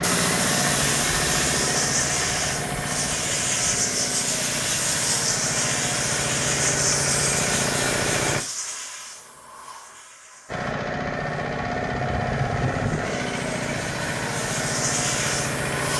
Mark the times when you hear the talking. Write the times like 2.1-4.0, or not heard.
not heard.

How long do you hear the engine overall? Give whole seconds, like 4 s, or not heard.
14 s.